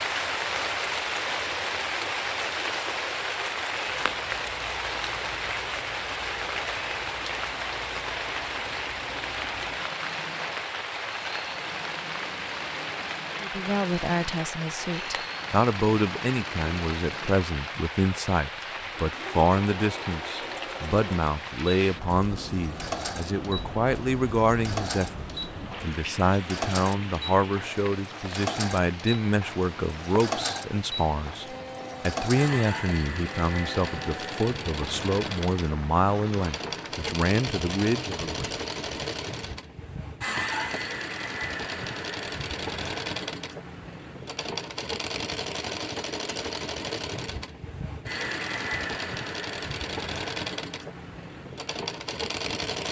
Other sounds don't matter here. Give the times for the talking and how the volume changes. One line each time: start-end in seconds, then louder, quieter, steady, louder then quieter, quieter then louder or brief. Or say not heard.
13.4-38.5 steady.